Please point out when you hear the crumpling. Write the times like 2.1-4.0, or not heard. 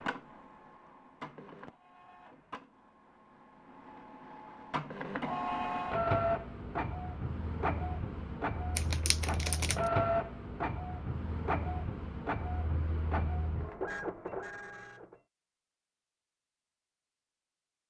8.8-9.9.